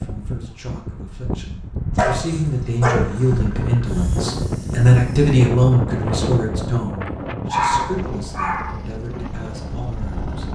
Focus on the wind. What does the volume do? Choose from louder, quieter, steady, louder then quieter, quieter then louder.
louder then quieter.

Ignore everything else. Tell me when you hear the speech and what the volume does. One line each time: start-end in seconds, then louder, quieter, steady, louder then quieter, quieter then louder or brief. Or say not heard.
0.0-10.5 louder then quieter.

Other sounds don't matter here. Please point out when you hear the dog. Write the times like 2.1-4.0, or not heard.
1.9-3.2, 7.5-8.7.